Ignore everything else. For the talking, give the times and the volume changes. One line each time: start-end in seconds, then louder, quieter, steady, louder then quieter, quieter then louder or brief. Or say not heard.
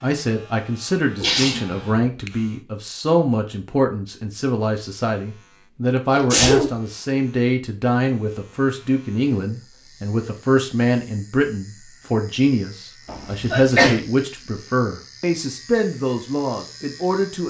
0.0-17.4 steady.